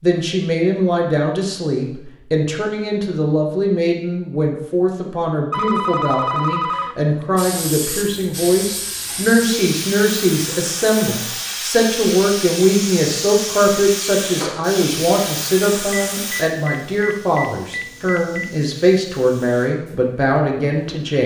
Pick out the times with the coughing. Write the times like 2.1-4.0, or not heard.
not heard.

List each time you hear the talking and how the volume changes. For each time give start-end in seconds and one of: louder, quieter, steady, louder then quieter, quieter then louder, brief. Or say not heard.
0.0-21.2 steady.